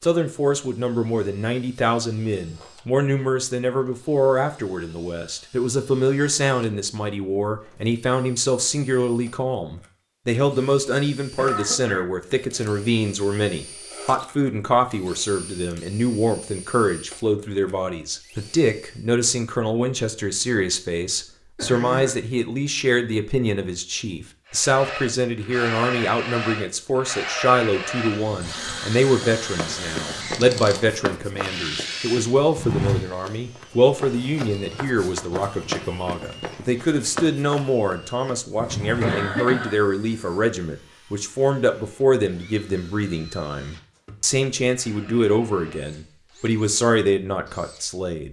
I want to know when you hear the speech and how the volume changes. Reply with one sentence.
You can hear the speech from 0.0 to 48.2 s, at a steady volume.